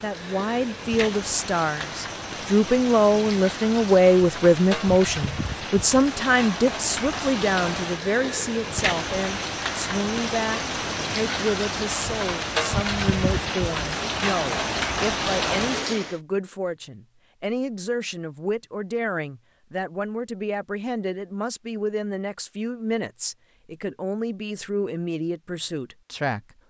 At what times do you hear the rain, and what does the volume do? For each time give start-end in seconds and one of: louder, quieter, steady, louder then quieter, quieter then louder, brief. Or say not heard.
0.0-16.1 louder.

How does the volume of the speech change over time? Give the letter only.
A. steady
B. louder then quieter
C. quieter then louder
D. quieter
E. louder
D.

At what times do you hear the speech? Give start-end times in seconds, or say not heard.
0.0-26.4.